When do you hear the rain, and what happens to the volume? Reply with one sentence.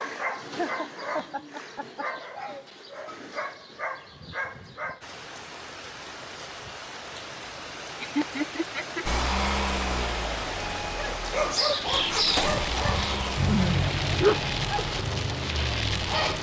You can hear the rain from 5.0 to 16.3 s, getting louder.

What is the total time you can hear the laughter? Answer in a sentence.
You can hear the laughter for 4 seconds altogether.